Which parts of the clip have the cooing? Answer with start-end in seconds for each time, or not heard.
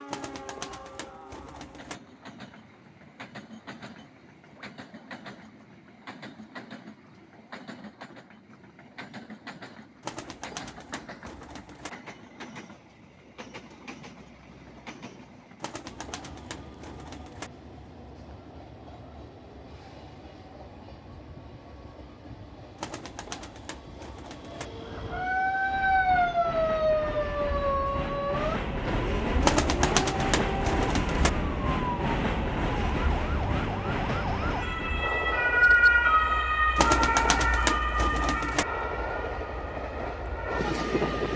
0.1-2.0, 10.0-11.9, 15.6-17.5, 22.8-24.6, 29.4-31.3, 36.8-38.6.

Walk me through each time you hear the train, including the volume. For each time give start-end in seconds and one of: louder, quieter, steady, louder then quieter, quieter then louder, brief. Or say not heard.
0.0-41.3 louder.